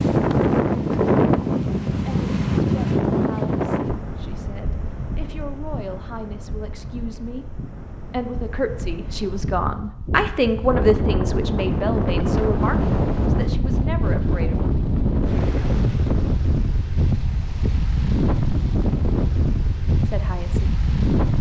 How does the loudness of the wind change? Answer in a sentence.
The volume of the wind goes down, then up.